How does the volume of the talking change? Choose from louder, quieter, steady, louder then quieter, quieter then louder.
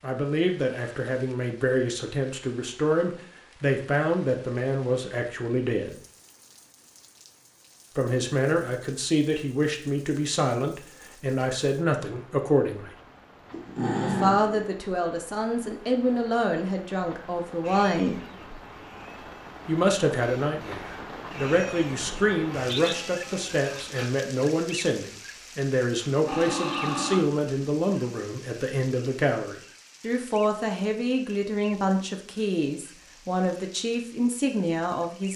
steady.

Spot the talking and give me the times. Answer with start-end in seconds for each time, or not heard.
0.0-6.0, 8.0-12.9, 14.0-18.2, 19.6-35.3.